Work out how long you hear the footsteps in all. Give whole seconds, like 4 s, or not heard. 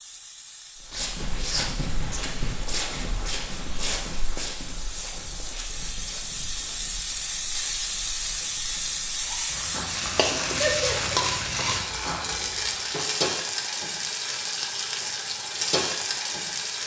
12 s.